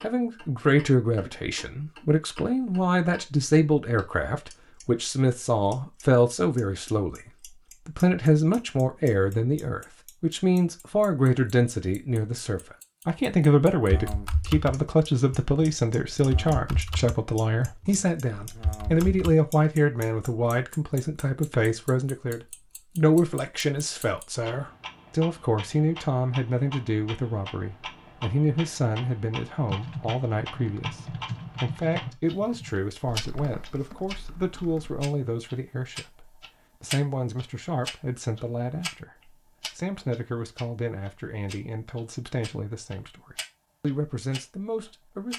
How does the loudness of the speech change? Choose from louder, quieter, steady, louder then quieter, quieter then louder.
quieter.